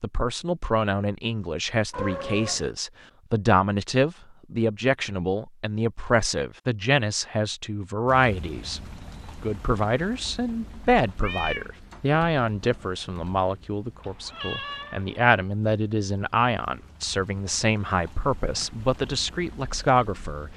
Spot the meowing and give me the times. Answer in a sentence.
The meowing can be heard from 1.9 to 2.7 s, from 11.2 to 11.7 s and from 14.0 to 15.3 s.